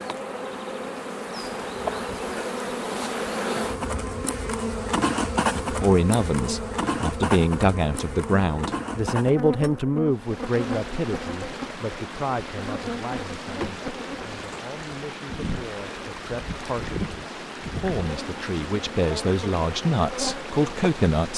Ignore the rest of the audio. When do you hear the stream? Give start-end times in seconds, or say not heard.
10.1-21.3.